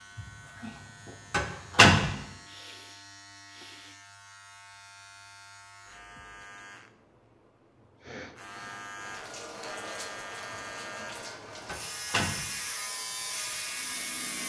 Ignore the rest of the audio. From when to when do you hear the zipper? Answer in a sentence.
The zipper can't be heard in this clip.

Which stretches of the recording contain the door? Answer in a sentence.
The door can be heard from 0.1 to 0.7 s, from 1.3 to 2.1 s, from 10.5 to 11.1 s and from 11.7 to 12.5 s.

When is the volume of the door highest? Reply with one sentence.
The loudest moment of the door is at 2 seconds.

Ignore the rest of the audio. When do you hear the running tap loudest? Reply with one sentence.
The loudest moment of the running tap is at 10 seconds.